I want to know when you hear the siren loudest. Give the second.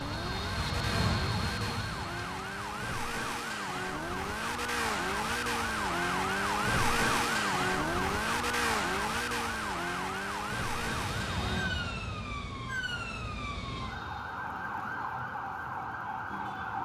7 s.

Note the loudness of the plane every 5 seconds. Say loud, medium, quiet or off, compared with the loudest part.
loud, off, medium, off.